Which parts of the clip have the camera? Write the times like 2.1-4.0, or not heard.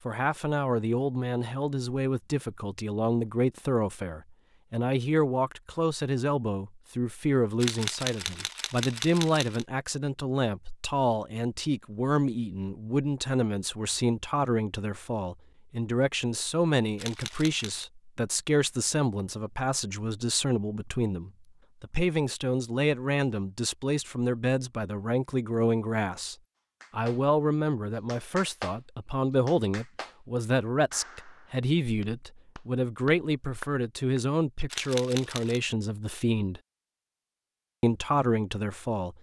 7.6-9.7, 16.9-17.9, 34.7-35.6.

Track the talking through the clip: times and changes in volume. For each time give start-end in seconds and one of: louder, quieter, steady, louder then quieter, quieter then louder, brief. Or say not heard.
0.1-36.6 steady
37.8-39.1 brief.